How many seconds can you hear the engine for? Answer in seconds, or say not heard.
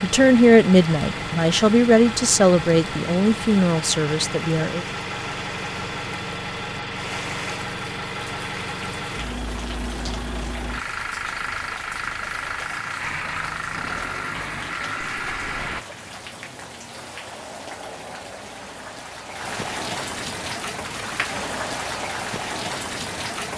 16 s.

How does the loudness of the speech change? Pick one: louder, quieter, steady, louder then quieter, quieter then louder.
quieter.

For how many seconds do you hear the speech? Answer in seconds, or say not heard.
5 s.